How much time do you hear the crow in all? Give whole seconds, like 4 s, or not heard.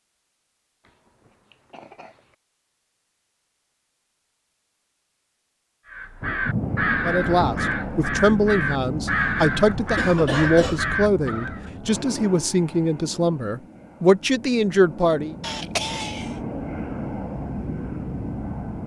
6 s.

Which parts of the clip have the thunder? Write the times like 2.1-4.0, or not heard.
6.2-7.7.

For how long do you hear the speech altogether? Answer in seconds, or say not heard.
8 s.